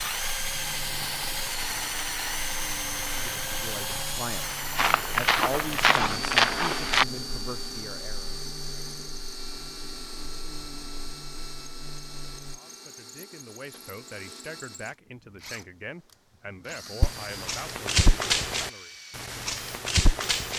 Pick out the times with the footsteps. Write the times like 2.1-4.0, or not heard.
4.8-7.0, 17.0-20.5.